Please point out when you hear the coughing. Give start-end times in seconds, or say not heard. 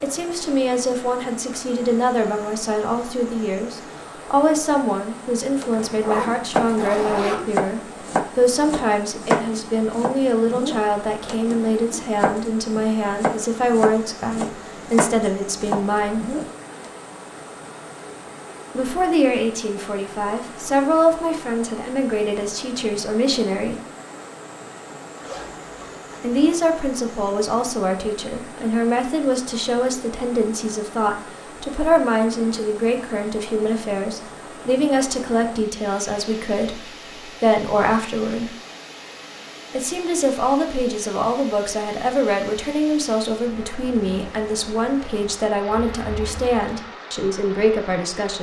not heard.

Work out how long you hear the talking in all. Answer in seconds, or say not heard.
42 s.